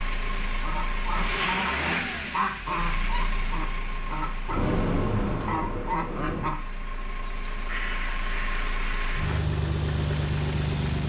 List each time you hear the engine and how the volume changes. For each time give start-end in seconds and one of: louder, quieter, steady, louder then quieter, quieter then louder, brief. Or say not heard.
0.0-11.0 quieter then louder.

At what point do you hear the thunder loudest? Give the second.
5 s.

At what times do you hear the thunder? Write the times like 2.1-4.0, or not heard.
4.5-6.5.